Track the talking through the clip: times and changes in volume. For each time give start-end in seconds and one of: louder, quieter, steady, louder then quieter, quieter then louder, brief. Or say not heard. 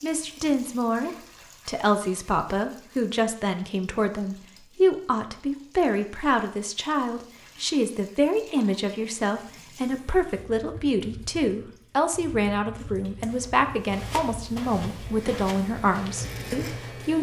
0.0-17.1 steady.